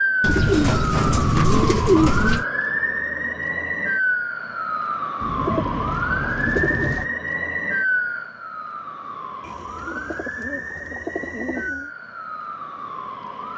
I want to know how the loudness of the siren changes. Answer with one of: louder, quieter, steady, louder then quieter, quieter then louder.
quieter.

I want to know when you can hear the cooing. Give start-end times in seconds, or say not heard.
0.2-2.5, 5.2-7.0, 9.4-11.9.